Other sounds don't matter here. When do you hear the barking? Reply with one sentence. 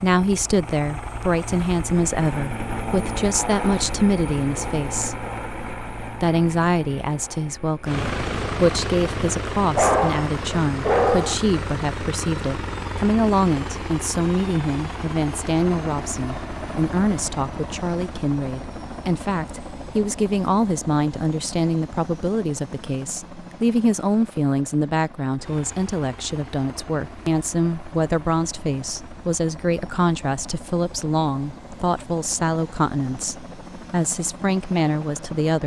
You can hear the barking from 9.8 to 11.3 s.